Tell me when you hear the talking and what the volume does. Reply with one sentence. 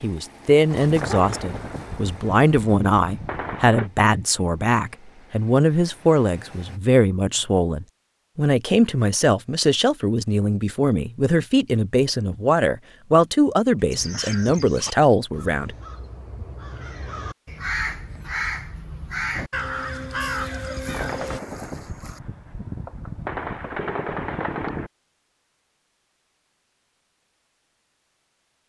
You can hear the talking from 0.0 to 15.8 s, at a steady volume.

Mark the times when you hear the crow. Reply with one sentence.
The crow can be heard from 13.9 to 21.4 s.